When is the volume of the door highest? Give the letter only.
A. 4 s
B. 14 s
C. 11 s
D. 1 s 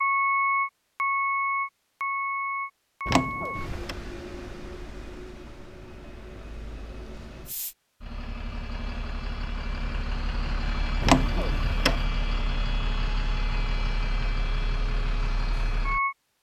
C.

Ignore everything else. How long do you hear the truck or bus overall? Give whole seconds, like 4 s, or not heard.
16 s.